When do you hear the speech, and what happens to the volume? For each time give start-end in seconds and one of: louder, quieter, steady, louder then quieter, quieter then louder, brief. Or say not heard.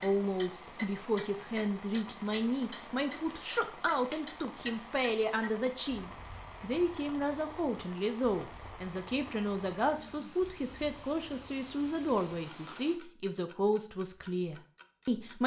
0.0-15.4 steady.